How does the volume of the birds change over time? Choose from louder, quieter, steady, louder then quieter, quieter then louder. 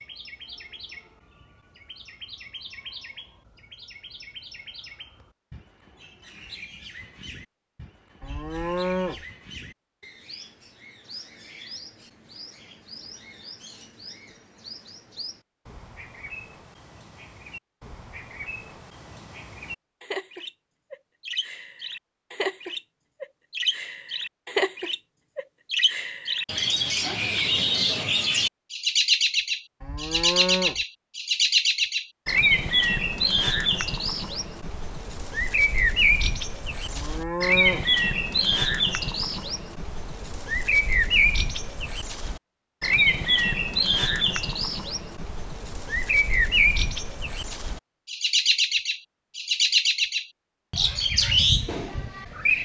louder.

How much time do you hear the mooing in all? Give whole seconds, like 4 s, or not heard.
3 s.